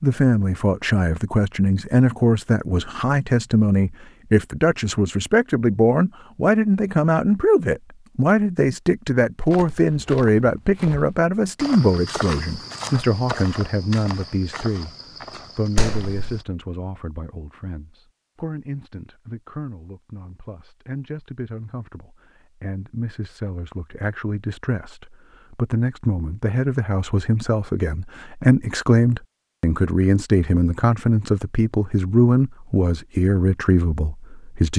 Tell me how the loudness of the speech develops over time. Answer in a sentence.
The loudness of the speech goes down, then up.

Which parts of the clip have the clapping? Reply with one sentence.
You can hear the clapping from 15.8 to 16.4 s.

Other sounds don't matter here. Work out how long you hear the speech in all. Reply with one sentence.
The speech can be heard for 35 seconds in total.